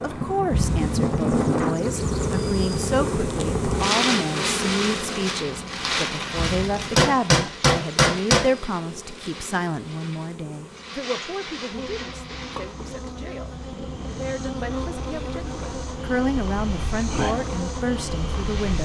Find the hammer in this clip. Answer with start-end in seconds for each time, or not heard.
7.0-8.4.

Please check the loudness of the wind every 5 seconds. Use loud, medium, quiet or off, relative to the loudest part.
loud, medium, quiet, quiet.